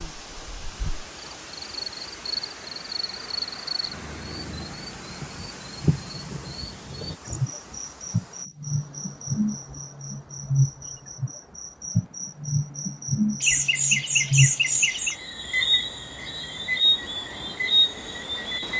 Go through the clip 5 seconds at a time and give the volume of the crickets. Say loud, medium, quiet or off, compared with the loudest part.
medium, medium, loud, loud.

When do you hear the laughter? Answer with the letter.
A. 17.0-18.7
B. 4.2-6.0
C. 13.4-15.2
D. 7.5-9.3
C.